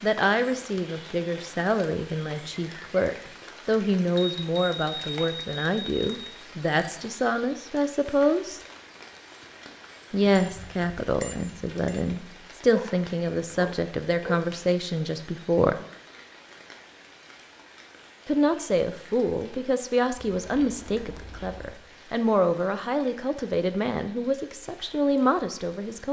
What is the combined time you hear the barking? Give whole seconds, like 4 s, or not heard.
2 s.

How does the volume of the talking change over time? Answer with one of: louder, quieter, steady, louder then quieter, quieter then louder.
steady.